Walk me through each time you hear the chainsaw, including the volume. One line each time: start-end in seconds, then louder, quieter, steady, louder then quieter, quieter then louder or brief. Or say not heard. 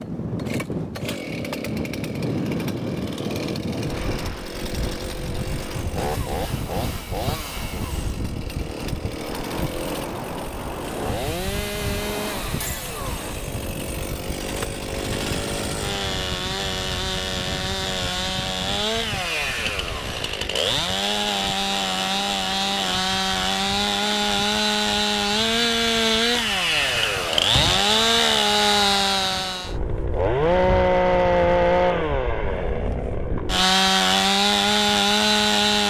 0.0-35.8 louder.